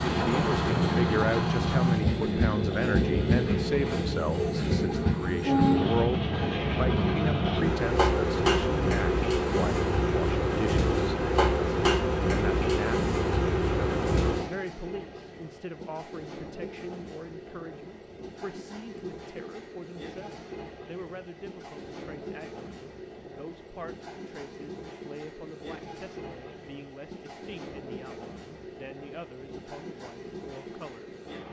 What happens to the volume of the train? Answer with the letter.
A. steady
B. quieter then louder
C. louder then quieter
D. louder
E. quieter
E.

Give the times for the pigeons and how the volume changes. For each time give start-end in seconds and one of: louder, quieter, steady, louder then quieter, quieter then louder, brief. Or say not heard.
not heard.